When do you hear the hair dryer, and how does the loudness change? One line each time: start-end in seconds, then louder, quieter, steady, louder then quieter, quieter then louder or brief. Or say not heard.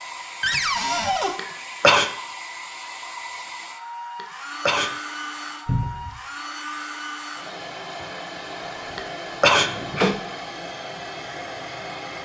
0.0-12.2 steady.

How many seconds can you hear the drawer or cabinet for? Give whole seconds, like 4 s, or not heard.
3 s.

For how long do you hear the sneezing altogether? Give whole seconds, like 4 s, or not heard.
3 s.